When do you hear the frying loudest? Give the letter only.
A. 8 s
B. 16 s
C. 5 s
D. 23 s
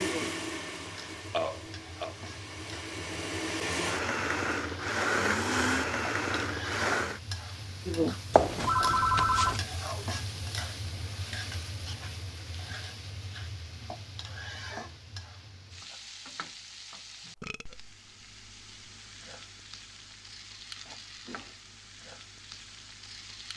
A.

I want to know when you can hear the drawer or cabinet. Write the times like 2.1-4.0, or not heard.
not heard.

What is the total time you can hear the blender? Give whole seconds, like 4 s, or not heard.
7 s.